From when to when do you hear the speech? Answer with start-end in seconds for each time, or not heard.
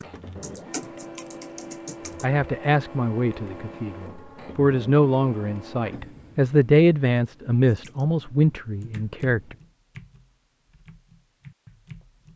2.2-9.6.